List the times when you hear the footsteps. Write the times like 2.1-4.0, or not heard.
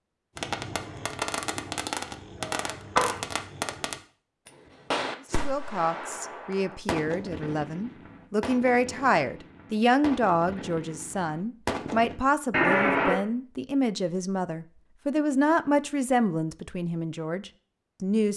not heard.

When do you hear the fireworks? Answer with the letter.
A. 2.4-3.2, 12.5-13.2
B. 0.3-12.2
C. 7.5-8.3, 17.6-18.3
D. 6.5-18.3
B.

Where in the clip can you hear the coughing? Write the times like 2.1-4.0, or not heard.
2.4-3.2, 12.5-13.2.